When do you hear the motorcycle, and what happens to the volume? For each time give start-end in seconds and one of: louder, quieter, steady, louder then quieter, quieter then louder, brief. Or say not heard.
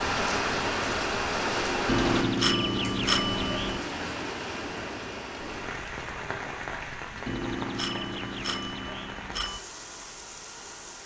not heard.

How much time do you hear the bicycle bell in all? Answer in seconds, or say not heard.
4 s.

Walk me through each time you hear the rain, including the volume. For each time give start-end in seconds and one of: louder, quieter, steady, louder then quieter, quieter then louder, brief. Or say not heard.
0.0-11.0 quieter.